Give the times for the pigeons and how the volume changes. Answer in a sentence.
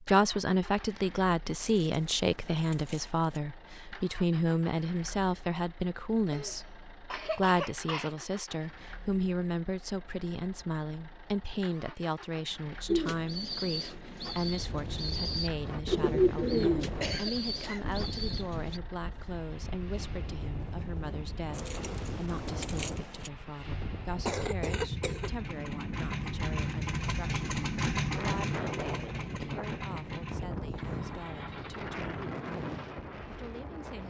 You can hear the pigeons from 12.8 to 18.8 s, getting louder then quieter.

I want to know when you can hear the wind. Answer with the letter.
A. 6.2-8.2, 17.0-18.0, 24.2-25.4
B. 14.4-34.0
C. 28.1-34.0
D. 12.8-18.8
B.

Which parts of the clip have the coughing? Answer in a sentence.
The coughing can be heard from 6.2 to 8.2 s, from 17.0 to 18.0 s and from 24.2 to 25.4 s.